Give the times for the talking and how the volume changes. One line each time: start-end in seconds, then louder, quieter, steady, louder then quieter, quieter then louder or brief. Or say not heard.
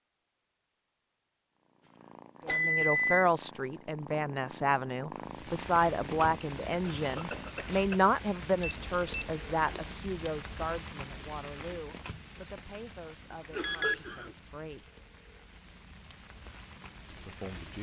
2.5-14.9 quieter
17.1-17.7 brief.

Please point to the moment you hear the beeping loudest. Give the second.
3 s.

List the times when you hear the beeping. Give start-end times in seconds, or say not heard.
2.5-3.2, 8.6-9.9, 13.6-14.0.